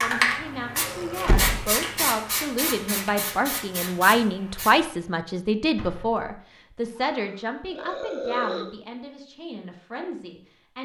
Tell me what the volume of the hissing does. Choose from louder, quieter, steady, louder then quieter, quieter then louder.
louder then quieter.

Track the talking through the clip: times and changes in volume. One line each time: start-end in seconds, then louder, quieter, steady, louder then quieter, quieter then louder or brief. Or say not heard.
0.0-10.8 louder then quieter.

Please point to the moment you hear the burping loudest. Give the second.
8 s.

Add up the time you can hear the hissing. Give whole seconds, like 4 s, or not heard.
5 s.